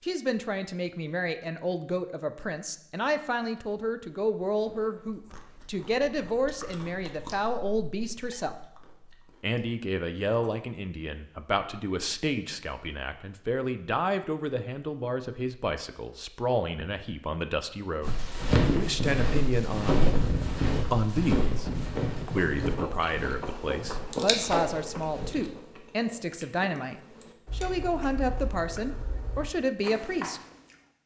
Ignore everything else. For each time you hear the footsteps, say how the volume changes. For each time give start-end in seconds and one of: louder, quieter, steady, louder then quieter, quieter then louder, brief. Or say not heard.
18.0-25.5 quieter.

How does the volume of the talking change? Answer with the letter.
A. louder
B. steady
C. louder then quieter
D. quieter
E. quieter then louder
B.